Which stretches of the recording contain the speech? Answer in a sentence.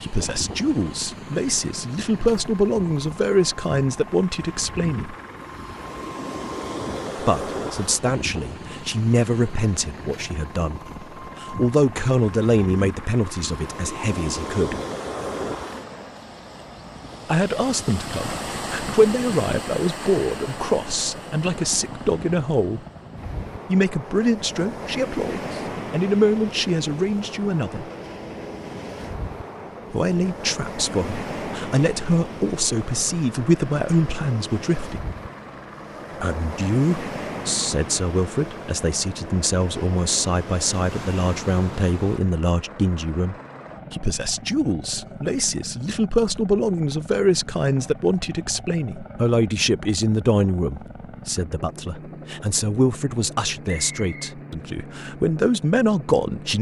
You can hear the speech from 0.0 to 5.2 s, from 7.2 to 14.8 s, from 17.2 to 22.8 s, from 23.6 to 27.9 s, from 29.9 to 35.1 s and from 36.2 to 56.5 s.